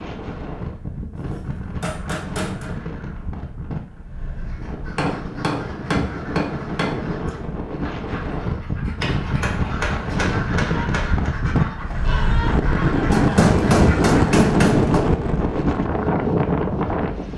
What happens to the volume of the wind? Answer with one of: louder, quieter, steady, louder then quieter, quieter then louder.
louder.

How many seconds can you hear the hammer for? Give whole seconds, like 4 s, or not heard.
8 s.